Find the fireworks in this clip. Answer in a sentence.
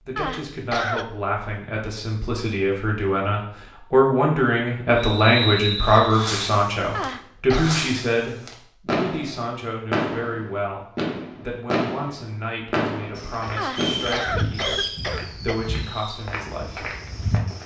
The fireworks can be heard from 5.8 to 16.2 s.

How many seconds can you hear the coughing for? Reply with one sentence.
You can hear the coughing for 4 seconds altogether.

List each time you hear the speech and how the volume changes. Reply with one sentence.
The speech can be heard from 0.1 to 16.9 s, getting louder then quieter.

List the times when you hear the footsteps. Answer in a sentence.
You can hear the footsteps from 13.2 to 17.6 s.